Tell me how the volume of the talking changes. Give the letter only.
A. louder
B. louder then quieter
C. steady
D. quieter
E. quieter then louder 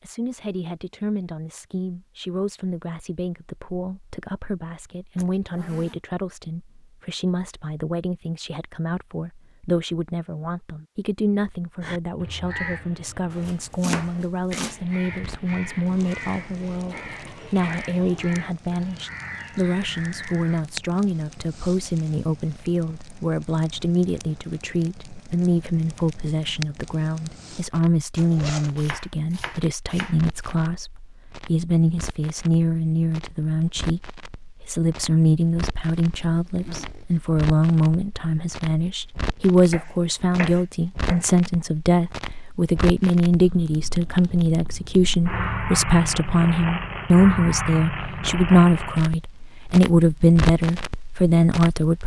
A.